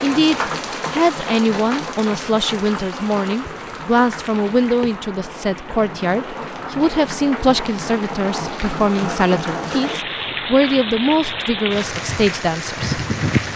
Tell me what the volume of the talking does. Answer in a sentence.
The loudness of the talking stays about the same.